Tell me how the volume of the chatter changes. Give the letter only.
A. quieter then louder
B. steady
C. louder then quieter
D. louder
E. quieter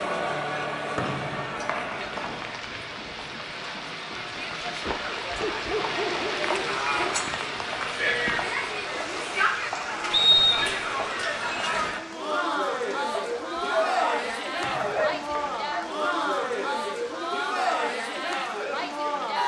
D.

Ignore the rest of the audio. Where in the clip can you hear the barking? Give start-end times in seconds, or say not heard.
5.4-7.3, 13.2-15.9.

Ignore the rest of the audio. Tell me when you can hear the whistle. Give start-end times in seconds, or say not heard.
0.9-2.3, 10.1-10.7, 14.6-15.6.